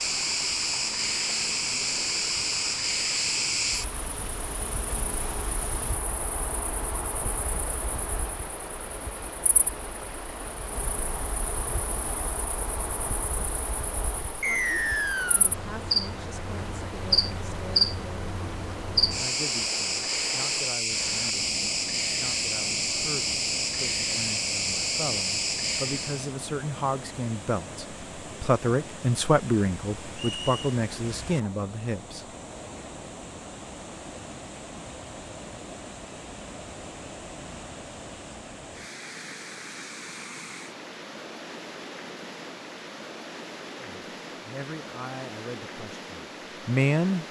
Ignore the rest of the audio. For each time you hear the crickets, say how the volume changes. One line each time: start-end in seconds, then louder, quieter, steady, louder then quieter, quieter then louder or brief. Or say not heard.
0.0-26.3 quieter then louder.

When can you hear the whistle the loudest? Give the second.
15 s.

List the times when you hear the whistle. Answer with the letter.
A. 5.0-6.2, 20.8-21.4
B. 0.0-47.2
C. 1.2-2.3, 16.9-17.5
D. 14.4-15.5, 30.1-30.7
D.